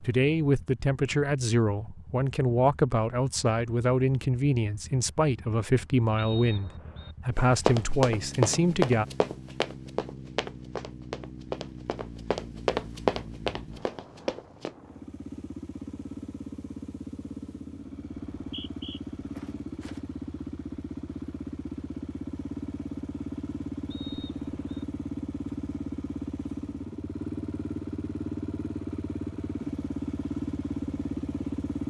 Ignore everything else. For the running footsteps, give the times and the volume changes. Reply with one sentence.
The running footsteps can be heard from 7.3 to 14.8 s, getting quieter then louder.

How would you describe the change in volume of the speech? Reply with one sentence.
The volume of the speech stays about the same.